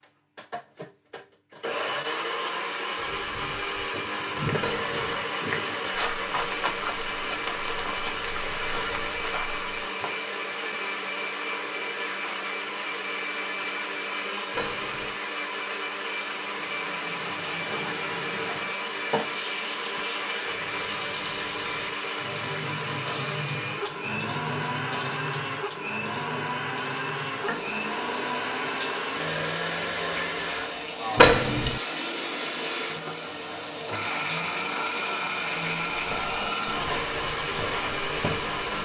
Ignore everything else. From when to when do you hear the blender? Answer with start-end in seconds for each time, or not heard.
0.0-38.7.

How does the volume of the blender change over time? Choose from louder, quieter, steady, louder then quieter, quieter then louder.
steady.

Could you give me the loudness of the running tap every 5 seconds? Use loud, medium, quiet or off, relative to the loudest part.
off, off, off, loud, loud, loud, loud, loud.